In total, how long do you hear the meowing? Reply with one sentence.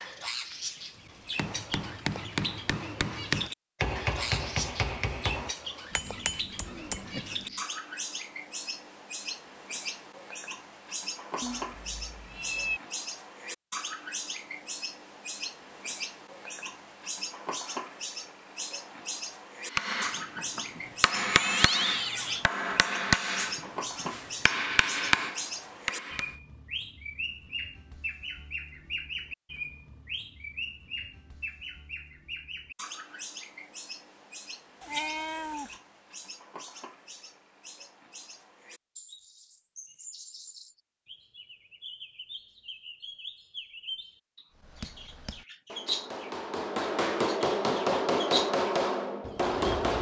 You can hear the meowing for 4 seconds altogether.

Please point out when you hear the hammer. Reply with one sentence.
You can hear the hammer from 1.1 to 7.7 s, from 19.7 to 26.4 s and from 44.5 to 49.9 s.